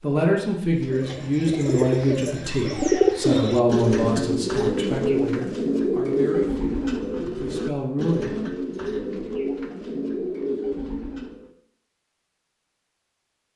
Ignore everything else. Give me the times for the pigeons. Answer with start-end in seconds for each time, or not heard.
0.7-11.5.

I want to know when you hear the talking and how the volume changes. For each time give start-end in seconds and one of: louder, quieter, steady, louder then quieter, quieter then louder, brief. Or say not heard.
0.0-8.3 quieter.